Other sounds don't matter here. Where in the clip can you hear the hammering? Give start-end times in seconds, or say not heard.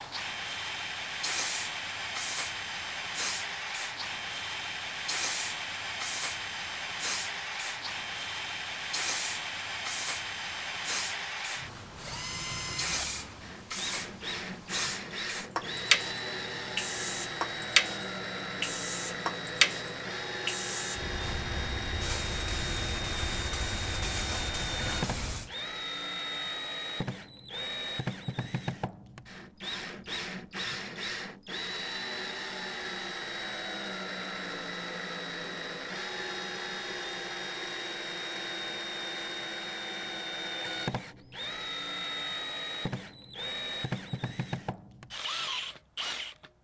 not heard.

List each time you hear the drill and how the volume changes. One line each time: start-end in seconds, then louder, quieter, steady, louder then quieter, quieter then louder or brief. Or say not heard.
0.0-46.5 steady.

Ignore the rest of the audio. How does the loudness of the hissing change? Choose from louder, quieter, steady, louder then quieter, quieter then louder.
louder then quieter.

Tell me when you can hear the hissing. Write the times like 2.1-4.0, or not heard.
0.0-25.6.